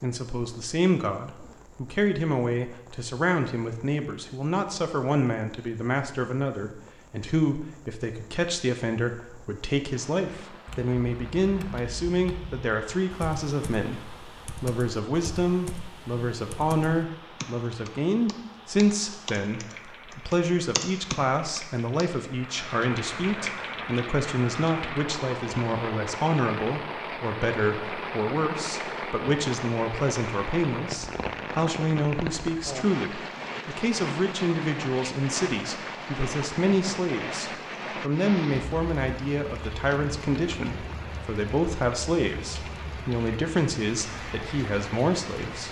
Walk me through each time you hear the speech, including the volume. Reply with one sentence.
The speech can be heard from 0.0 to 45.6 s, at a steady volume.